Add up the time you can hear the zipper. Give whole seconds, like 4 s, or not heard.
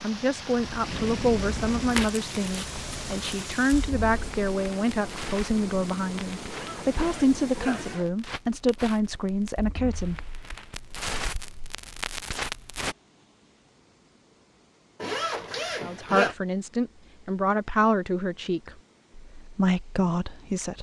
3 s.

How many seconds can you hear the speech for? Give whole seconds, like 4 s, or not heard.
15 s.